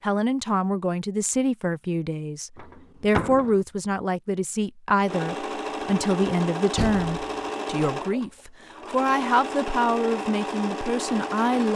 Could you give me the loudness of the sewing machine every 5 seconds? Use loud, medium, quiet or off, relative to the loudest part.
off, loud, loud.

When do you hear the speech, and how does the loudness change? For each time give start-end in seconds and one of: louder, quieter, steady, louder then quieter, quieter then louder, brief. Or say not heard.
0.0-11.7 steady.